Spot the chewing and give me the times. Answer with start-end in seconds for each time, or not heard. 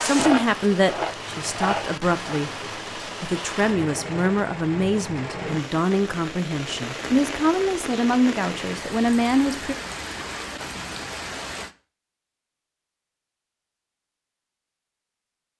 0.0-2.5.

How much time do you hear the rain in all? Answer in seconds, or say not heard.
12 s.